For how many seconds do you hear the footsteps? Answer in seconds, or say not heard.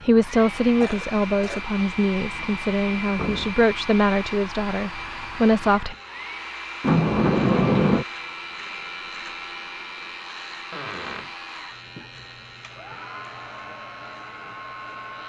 not heard.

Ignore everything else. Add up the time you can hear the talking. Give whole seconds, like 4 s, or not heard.
6 s.